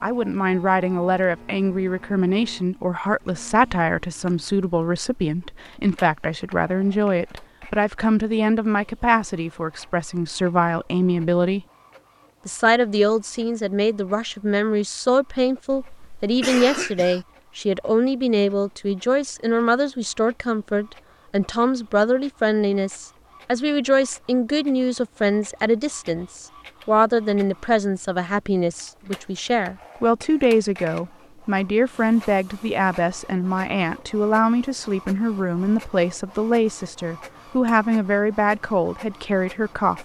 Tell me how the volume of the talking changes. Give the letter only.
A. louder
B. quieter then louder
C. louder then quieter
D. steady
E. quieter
D.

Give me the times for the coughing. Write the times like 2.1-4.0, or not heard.
15.7-17.2.